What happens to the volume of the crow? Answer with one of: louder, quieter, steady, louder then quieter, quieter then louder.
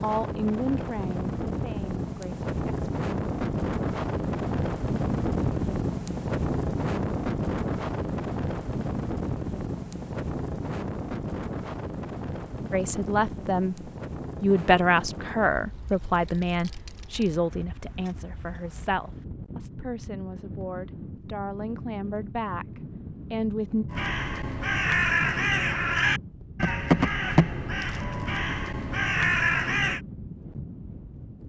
quieter then louder.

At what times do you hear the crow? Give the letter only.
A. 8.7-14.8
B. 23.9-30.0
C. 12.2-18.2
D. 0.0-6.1
B.